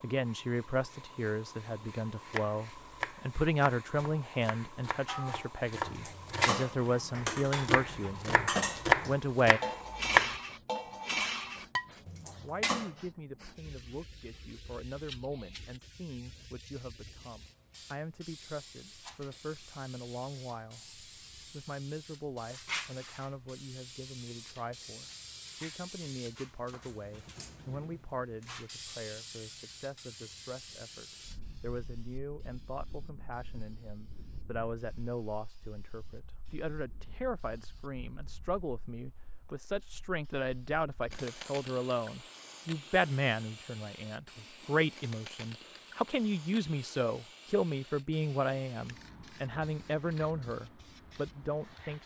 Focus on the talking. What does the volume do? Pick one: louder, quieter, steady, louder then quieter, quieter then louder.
quieter then louder.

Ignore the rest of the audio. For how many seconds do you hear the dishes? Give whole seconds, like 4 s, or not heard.
8 s.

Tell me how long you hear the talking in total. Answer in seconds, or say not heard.
49 s.